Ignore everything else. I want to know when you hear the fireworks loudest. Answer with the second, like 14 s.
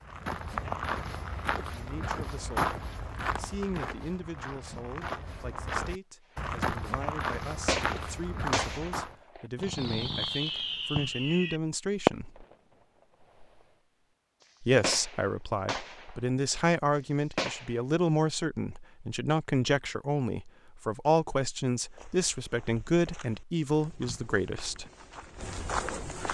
12 s.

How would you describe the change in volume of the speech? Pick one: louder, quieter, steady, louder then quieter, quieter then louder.
louder.